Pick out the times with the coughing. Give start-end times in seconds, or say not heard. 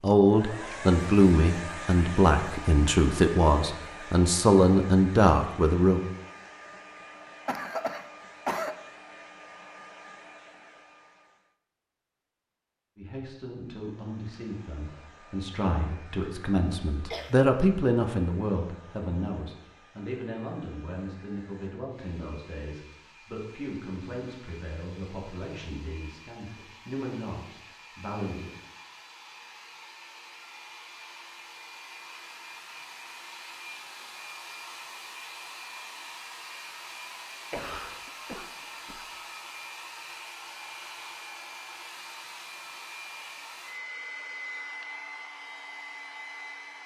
7.5-8.8, 17.1-17.6, 37.5-39.0.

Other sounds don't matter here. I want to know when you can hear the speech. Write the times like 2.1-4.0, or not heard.
0.0-6.0, 12.9-28.5.